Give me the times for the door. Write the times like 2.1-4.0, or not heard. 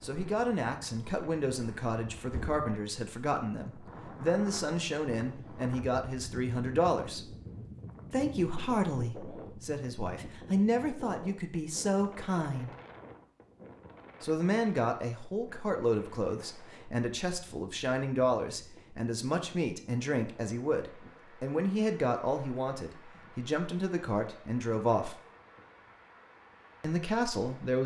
2.3-2.7.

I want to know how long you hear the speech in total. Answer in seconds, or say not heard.
24 s.